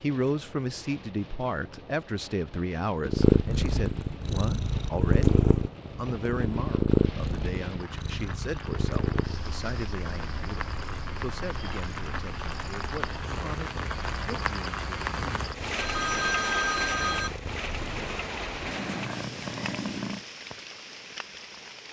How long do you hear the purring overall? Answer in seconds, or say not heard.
17 s.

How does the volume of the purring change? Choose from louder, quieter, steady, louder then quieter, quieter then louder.
quieter then louder.